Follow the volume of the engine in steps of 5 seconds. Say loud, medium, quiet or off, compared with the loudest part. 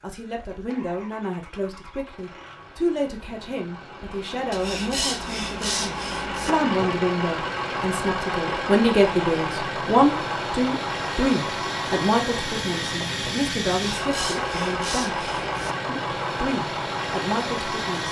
quiet, loud, loud, loud.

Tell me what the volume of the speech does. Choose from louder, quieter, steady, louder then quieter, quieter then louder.
louder then quieter.